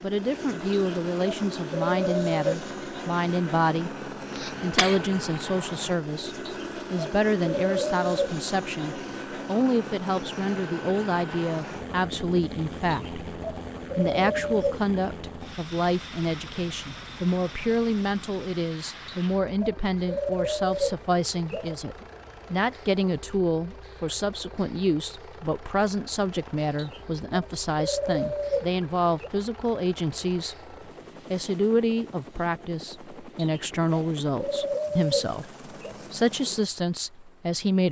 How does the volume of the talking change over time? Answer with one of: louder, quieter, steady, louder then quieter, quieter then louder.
steady.